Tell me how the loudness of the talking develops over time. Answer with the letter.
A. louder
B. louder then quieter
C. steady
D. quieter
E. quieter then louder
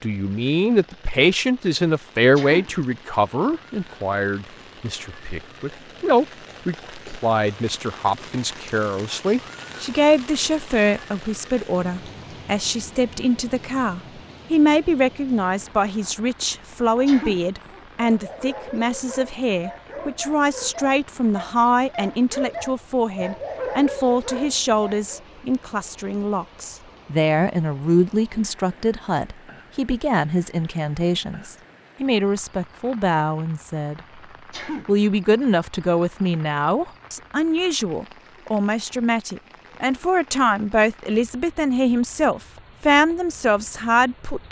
C.